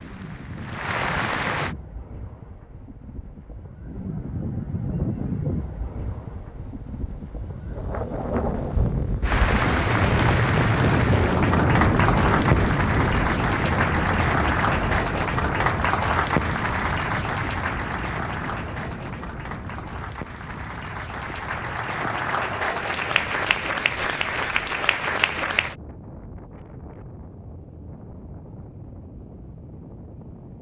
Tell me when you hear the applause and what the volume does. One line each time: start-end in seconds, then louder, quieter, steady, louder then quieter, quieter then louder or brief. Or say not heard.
0.0-1.8 brief
9.2-25.8 quieter then louder.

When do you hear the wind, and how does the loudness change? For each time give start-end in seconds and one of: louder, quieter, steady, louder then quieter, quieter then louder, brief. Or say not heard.
0.0-30.5 louder then quieter.